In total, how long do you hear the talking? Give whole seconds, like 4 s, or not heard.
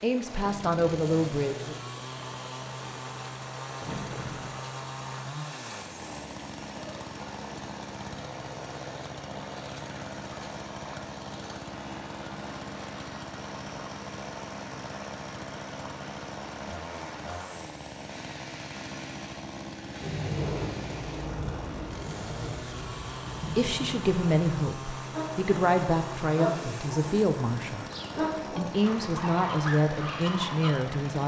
9 s.